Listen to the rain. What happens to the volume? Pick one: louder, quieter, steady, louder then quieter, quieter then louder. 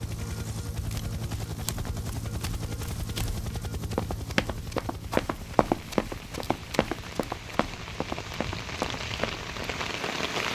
louder.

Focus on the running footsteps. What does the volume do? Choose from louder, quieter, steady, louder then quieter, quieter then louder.
louder then quieter.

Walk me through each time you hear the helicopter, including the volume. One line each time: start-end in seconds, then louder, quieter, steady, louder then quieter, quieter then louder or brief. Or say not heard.
0.0-10.5 quieter.